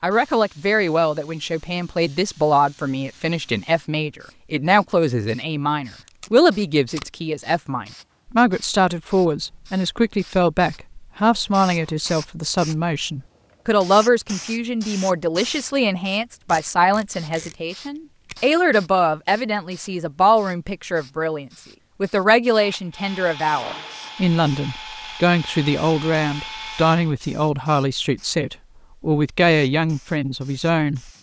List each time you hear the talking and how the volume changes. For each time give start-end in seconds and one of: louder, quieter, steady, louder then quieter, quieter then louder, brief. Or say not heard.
0.0-31.1 steady.